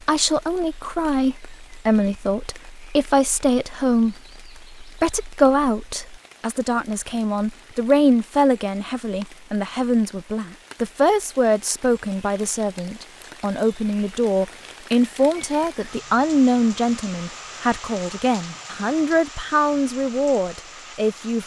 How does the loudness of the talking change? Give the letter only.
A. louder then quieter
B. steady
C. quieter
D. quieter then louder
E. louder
B.